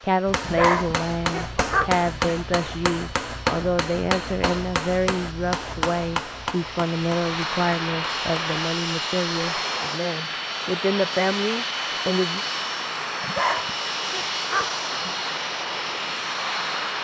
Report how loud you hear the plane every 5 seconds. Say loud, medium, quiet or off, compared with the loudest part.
quiet, loud, loud, loud.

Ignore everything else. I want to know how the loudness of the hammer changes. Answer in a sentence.
The volume of the hammer stays about the same.